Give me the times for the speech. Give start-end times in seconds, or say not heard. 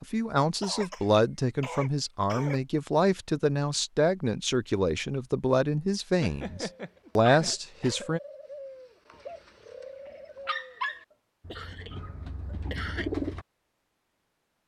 0.0-8.2.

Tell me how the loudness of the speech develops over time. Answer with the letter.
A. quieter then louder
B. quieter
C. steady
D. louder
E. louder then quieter
C.